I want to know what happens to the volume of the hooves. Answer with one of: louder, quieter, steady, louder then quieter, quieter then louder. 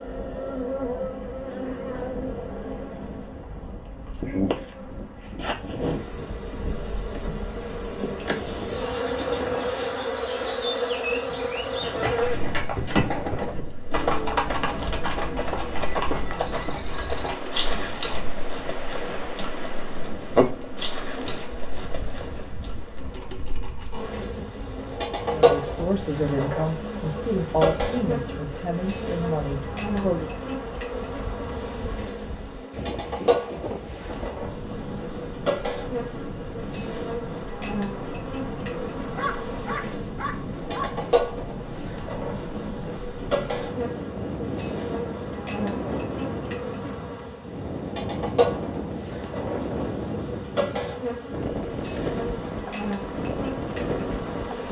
quieter then louder.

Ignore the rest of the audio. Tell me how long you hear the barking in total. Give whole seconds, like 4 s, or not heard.
2 s.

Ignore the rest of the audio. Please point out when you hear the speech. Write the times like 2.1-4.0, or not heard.
25.2-30.3.